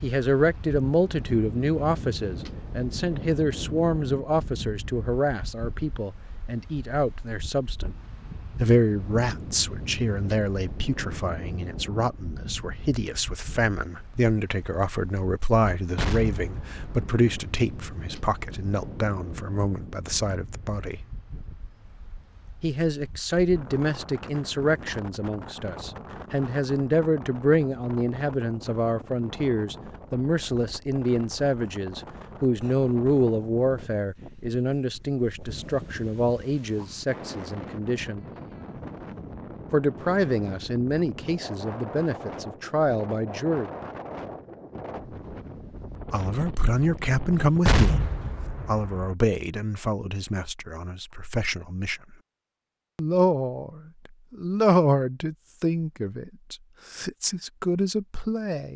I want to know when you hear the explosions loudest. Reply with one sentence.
The volume of the explosions peaks at 48 seconds.